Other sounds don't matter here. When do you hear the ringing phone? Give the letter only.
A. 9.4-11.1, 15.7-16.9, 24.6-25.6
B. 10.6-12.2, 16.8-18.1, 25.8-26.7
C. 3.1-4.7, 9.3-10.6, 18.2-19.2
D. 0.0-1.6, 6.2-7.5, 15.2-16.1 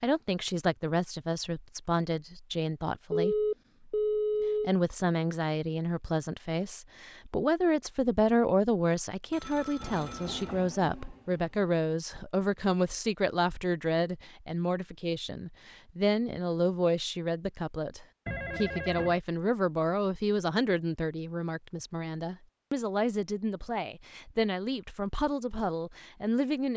C.